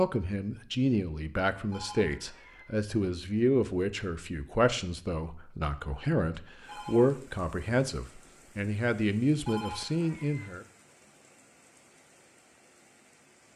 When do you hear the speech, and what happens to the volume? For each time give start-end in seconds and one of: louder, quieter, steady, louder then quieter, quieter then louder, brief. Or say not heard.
0.0-10.7 steady.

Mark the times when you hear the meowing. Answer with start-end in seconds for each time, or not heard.
not heard.